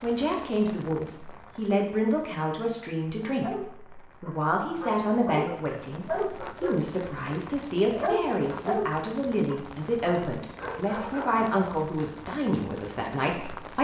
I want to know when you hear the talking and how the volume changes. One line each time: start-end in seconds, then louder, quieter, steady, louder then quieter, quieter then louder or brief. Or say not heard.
0.0-13.7 steady.